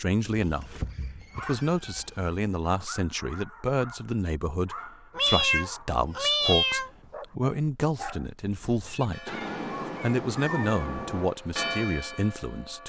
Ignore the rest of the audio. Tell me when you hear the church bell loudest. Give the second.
12 s.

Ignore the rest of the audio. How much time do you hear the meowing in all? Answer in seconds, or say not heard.
6 s.